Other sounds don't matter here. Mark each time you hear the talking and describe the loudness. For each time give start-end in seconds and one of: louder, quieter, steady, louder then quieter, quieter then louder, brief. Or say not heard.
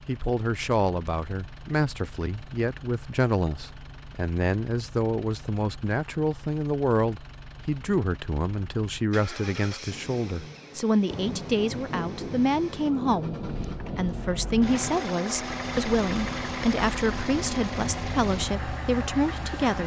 0.1-19.8 steady.